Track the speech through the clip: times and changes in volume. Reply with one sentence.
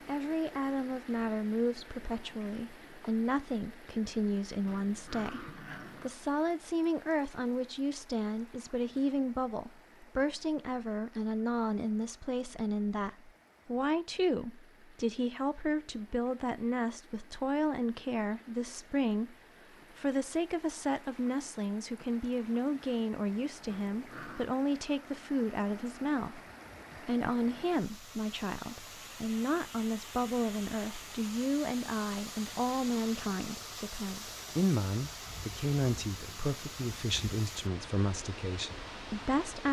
You can hear the speech from 0.1 to 39.6 s, at a steady volume.